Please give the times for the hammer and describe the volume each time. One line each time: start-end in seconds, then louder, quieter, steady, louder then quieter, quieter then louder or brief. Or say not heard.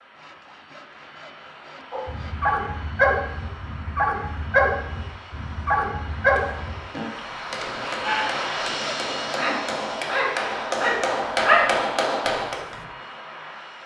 6.2-12.7 louder.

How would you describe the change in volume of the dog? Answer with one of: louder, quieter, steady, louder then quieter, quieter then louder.
quieter then louder.